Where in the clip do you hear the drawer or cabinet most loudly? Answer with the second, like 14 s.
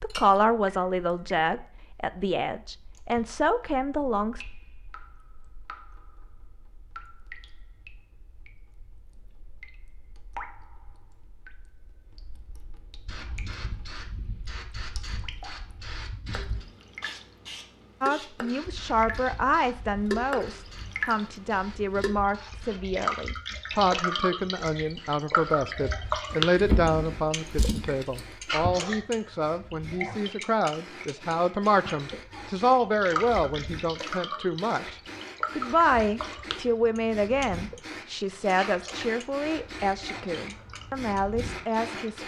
27 s.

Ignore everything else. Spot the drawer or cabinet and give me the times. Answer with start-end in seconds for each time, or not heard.
26.6-28.7.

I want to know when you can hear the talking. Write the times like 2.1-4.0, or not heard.
0.0-4.5, 18.0-42.2.